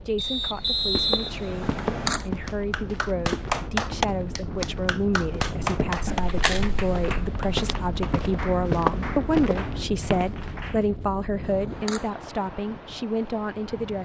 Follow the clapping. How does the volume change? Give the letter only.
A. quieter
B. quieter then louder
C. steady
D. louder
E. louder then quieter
A.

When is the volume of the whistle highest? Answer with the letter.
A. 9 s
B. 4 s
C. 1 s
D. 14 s
C.